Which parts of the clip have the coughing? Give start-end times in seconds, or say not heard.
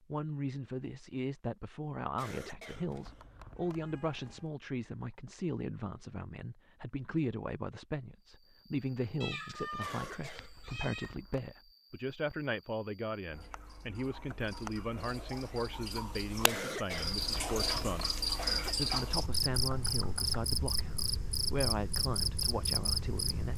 2.1-4.0, 9.8-11.6, 16.4-18.9.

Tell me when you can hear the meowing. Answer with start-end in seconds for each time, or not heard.
2.8-4.5, 9.2-11.2, 19.6-20.4.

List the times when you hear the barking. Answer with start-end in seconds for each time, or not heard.
not heard.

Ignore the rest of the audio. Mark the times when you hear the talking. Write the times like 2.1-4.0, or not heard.
0.1-18.1, 18.8-23.5.